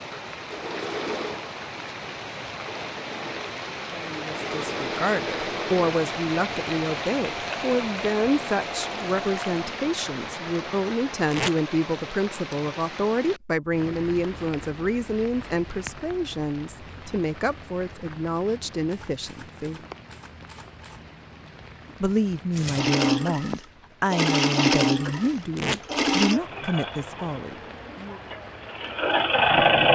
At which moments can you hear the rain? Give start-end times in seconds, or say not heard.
0.0-29.9.